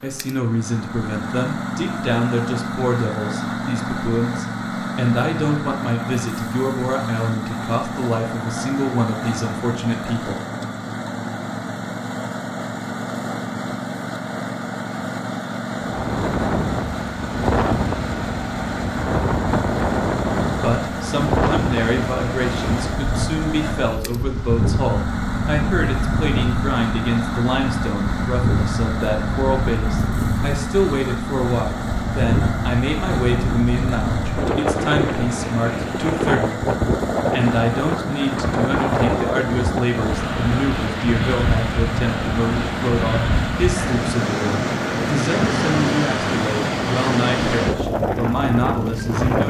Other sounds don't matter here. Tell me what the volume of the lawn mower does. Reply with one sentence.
The loudness of the lawn mower stays about the same.